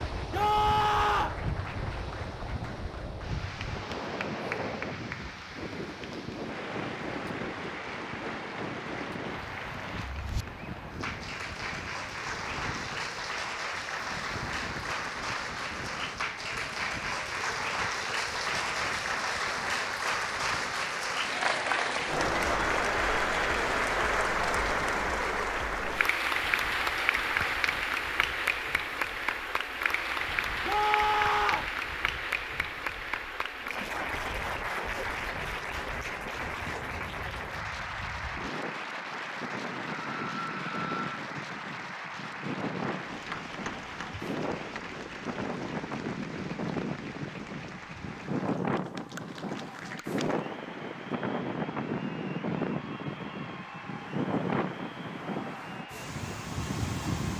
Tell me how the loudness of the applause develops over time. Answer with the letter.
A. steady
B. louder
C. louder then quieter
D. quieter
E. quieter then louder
C.